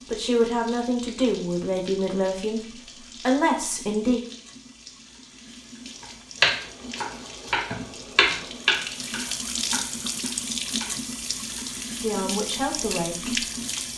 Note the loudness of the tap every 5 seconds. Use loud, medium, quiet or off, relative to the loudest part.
quiet, medium, loud.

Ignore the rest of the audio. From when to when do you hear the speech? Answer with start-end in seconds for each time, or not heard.
0.1-4.2, 12.0-13.4.